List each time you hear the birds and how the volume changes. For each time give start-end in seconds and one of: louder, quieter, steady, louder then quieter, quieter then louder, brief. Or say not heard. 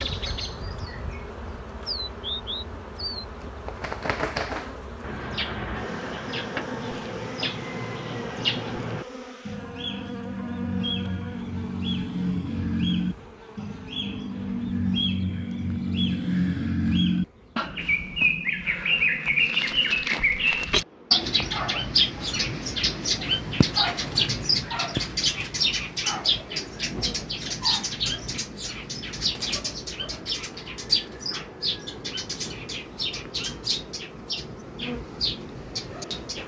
0.0-36.4 louder then quieter.